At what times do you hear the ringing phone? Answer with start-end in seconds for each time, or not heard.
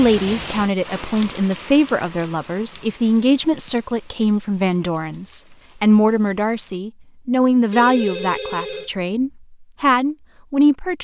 7.7-8.9.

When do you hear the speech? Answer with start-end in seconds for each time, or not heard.
0.0-10.9.